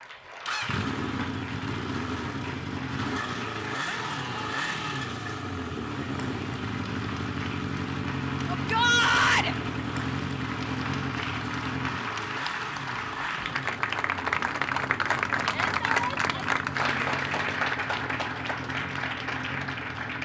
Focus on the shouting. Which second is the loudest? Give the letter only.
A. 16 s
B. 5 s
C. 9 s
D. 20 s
C.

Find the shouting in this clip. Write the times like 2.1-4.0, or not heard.
3.9-5.0, 8.4-9.6, 15.4-16.5.